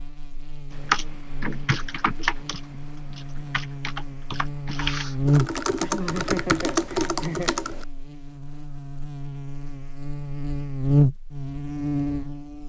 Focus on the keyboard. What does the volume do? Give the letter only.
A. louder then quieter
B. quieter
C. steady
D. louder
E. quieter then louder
E.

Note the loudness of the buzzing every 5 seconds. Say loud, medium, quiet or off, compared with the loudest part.
quiet, loud, loud.